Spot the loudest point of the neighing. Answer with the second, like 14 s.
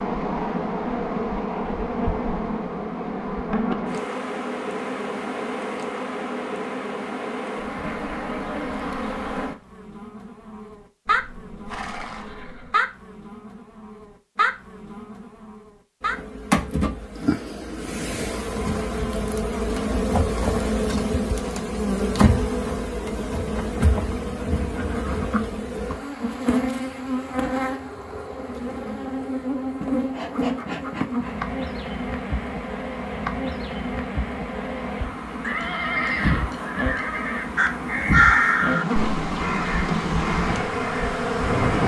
36 s.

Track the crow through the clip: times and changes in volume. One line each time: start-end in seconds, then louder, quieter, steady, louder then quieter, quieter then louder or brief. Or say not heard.
37.5-41.8 quieter.